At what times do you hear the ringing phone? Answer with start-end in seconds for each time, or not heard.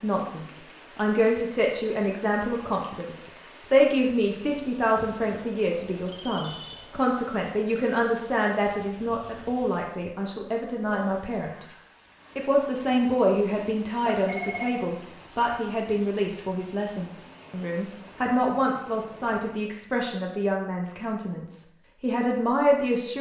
5.0-6.9, 14.1-14.7.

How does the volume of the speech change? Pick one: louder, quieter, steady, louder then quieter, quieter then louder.
steady.